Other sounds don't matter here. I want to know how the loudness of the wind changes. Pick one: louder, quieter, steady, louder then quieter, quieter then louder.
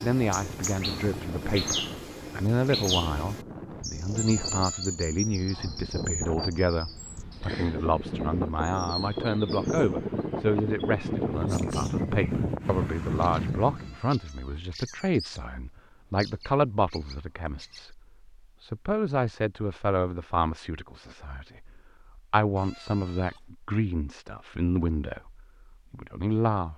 louder.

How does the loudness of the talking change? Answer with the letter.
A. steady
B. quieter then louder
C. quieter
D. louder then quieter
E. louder
A.